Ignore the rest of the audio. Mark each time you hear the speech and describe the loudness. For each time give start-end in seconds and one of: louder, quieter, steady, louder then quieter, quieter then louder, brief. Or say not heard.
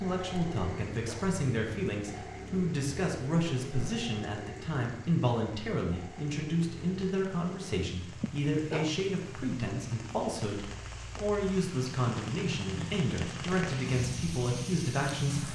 0.0-15.5 steady.